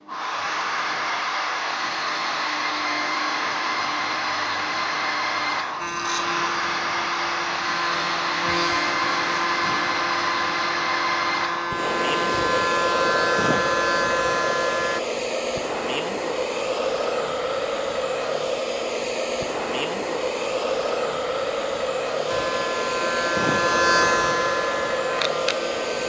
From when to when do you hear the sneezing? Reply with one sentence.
The sneezing can't be heard in this clip.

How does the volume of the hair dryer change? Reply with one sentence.
The volume of the hair dryer stays about the same.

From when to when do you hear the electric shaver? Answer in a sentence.
You can hear the electric shaver from 5.8 to 15.0 s and from 22.2 to 26.0 s.